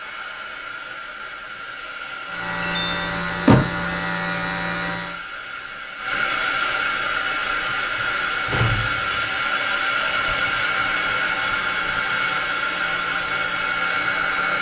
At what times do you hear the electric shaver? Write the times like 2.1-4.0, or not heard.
2.2-5.2, 10.1-14.5.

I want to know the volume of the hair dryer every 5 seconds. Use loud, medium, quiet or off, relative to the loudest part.
medium, loud, loud.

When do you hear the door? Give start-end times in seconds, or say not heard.
2.6-3.9, 8.0-9.3.